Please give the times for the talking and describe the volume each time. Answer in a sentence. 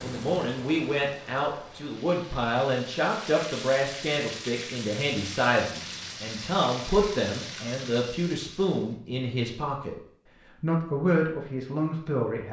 The talking can be heard from 0.0 to 9.9 s, at a steady volume; and briefly from 10.6 to 12.4 s.